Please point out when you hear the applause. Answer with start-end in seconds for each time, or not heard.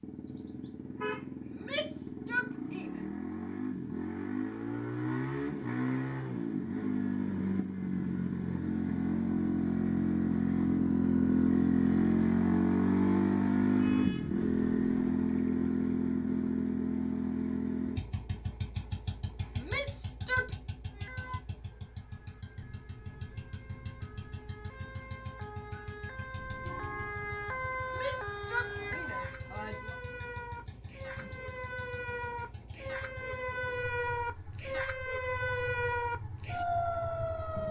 not heard.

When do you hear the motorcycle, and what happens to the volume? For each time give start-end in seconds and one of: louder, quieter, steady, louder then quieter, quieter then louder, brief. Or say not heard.
0.0-37.6 louder then quieter.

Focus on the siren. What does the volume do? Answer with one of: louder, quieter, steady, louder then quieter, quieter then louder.
louder.